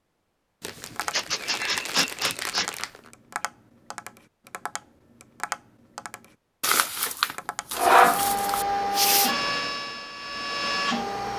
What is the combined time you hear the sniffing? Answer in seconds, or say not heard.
2 s.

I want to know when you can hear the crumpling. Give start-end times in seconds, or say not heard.
0.6-3.1, 6.6-8.7.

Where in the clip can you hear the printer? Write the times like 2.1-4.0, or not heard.
7.8-11.3.